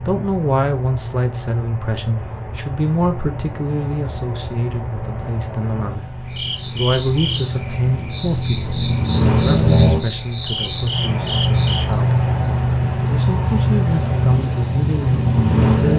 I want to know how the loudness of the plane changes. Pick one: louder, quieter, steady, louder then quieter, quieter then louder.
louder.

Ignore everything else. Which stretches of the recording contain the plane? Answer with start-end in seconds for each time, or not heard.
0.0-15.9.